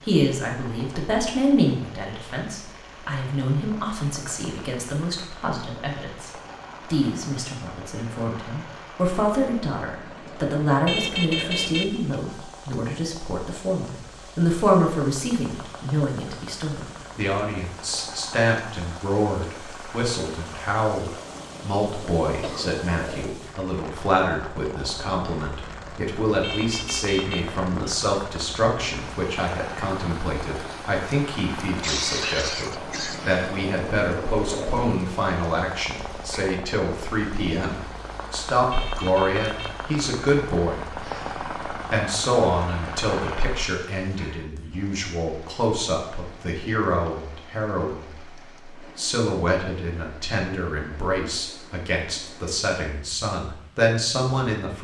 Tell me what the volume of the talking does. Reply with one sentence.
The volume of the talking stays about the same.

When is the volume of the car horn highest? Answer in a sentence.
The loudest moment of the car horn is at 11 seconds.